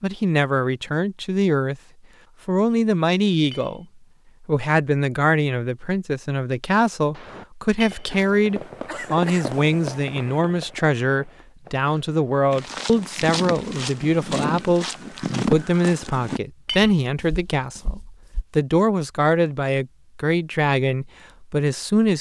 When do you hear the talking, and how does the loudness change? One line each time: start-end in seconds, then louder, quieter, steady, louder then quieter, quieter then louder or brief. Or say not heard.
0.0-1.8 brief
2.5-22.1 steady.